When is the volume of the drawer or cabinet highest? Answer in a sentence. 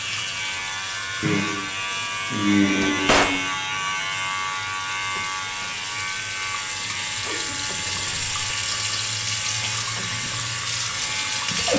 The volume of the drawer or cabinet peaks at 3 seconds.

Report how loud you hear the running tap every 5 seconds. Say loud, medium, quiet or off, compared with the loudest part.
medium, loud, loud.